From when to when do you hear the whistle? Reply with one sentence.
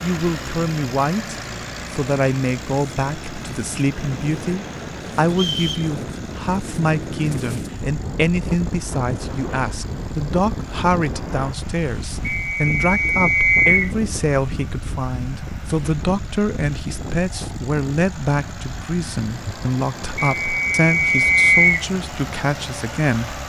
The whistle can be heard from 5.3 to 5.9 s, from 12.2 to 13.9 s and from 20.2 to 21.9 s.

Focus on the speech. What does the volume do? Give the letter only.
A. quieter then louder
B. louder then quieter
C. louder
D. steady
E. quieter
D.